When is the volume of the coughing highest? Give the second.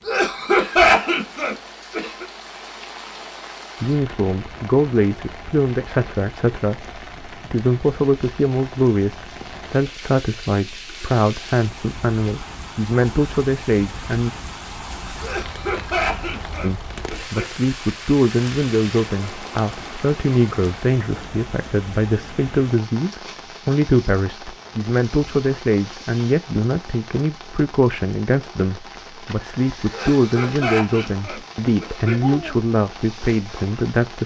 1 s.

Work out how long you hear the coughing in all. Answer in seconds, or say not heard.
7 s.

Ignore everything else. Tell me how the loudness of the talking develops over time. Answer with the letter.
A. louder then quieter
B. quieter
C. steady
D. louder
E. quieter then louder
C.